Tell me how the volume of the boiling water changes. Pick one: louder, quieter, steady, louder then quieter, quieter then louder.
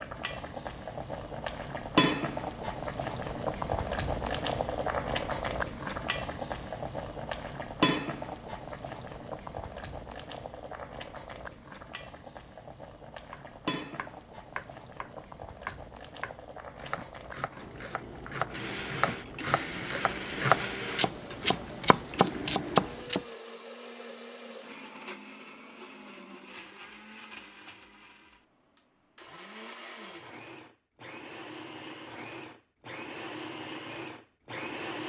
quieter.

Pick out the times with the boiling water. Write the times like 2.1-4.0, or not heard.
0.0-23.2.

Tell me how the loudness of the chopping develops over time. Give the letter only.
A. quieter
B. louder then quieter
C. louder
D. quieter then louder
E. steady
C.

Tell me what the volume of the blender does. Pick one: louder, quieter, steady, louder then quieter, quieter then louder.
quieter then louder.